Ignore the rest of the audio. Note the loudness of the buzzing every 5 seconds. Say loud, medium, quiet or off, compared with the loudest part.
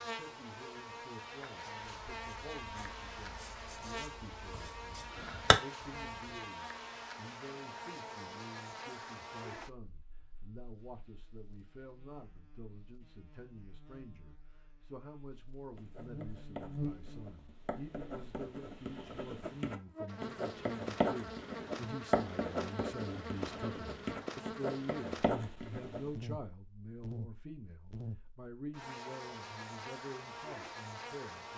loud, loud, quiet, loud, loud, loud, loud.